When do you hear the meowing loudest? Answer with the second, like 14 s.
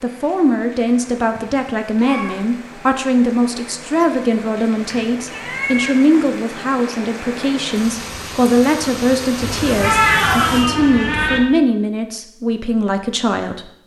10 s.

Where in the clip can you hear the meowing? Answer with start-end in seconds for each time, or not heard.
1.4-2.5, 4.8-6.0, 9.4-11.4.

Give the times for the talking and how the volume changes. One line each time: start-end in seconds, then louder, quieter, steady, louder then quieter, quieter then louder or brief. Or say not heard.
0.0-13.7 steady.